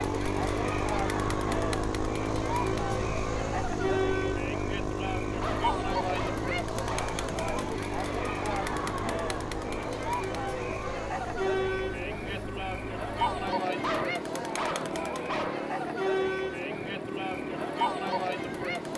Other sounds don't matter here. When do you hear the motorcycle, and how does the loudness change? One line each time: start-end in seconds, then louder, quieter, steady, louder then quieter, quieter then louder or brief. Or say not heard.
0.0-18.9 quieter.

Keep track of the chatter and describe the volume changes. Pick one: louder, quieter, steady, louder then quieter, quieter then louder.
steady.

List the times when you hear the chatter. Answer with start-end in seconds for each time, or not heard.
0.0-18.9.